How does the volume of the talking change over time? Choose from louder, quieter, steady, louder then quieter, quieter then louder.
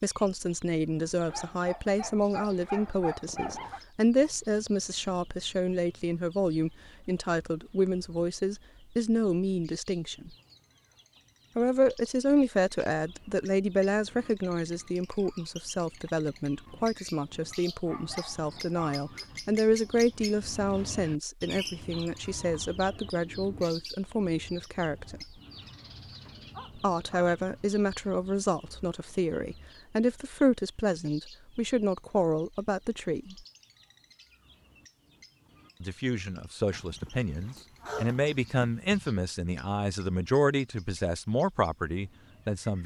steady.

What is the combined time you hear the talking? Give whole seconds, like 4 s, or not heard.
38 s.